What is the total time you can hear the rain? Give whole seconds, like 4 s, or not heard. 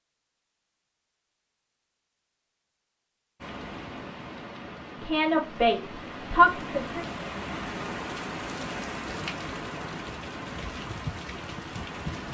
9 s.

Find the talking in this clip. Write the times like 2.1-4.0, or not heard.
5.0-7.0.